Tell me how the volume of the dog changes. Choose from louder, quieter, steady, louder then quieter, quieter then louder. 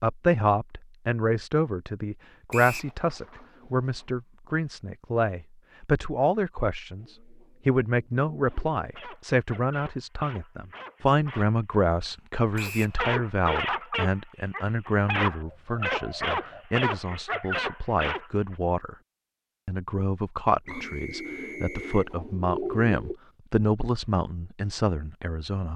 louder.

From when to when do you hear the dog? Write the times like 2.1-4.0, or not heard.
8.4-18.6.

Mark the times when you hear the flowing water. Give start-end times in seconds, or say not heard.
not heard.